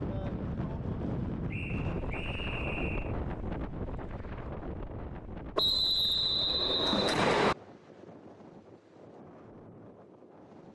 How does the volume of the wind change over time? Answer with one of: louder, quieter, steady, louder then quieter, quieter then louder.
quieter.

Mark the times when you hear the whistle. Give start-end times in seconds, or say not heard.
1.5-3.1, 5.5-7.5.